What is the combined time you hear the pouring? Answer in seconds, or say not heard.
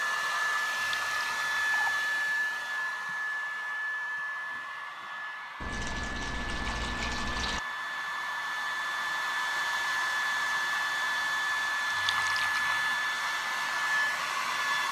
4 s.